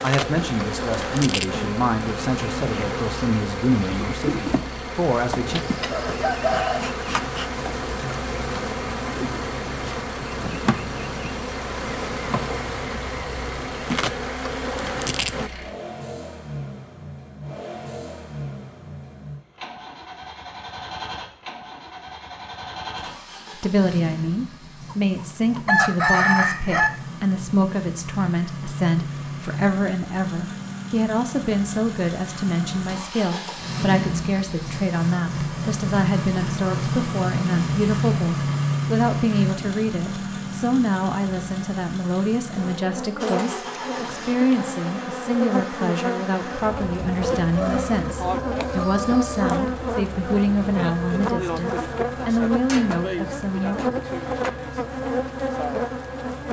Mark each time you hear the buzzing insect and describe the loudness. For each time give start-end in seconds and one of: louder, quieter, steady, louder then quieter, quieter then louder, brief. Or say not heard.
0.0-15.5 steady
42.5-56.4 steady.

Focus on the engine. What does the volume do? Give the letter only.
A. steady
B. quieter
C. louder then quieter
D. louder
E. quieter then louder
C.